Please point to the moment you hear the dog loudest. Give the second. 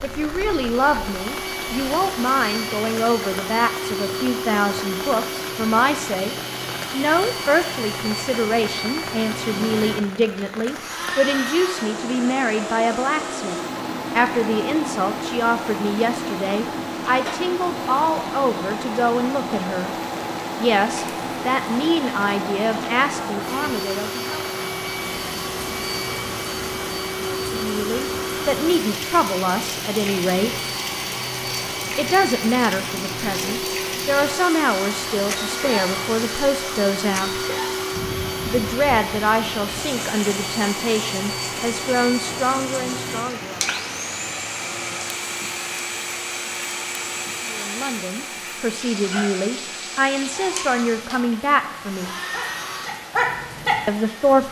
53 s.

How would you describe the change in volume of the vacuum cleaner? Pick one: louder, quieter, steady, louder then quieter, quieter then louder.
steady.